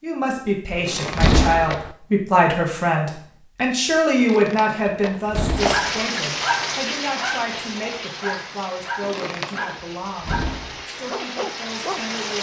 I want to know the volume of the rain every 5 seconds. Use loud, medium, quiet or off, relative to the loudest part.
off, loud, loud.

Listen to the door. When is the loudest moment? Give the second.
1 s.